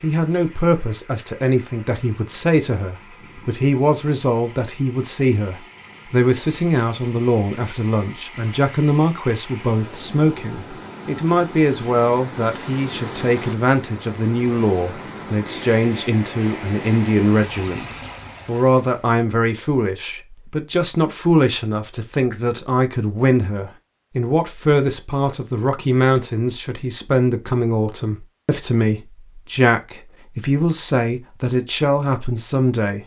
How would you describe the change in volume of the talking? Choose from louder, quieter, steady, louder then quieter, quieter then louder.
steady.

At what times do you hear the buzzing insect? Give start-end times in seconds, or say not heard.
not heard.